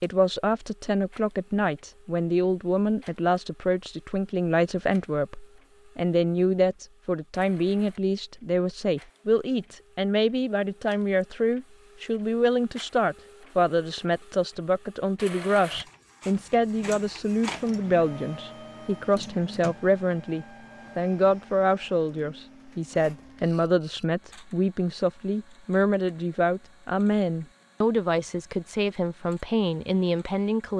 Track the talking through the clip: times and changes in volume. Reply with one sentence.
You can hear the talking from 0.0 to 30.7 s, at a steady volume.